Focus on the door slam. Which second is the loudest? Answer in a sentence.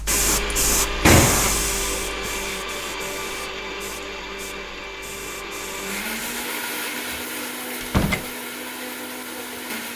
The volume of the door slam peaks at 1 second.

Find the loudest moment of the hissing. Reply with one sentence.
The loudest moment of the hissing is at 1 second.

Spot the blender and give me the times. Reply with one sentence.
The blender can be heard from 0.1 to 9.9 s.